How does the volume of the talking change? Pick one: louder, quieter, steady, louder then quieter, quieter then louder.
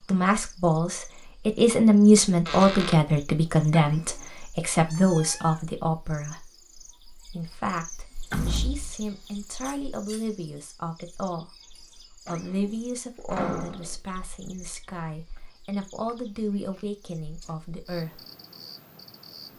quieter.